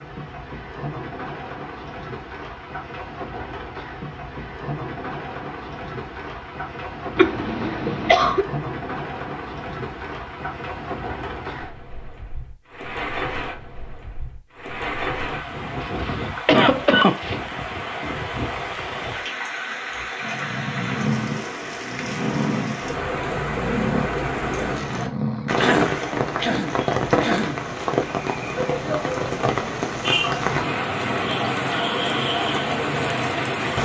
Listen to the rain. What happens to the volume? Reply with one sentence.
The volume of the rain goes up.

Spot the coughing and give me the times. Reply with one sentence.
You can hear the coughing from 7.2 to 8.4 s, from 15.8 to 17.4 s and from 25.6 to 27.6 s.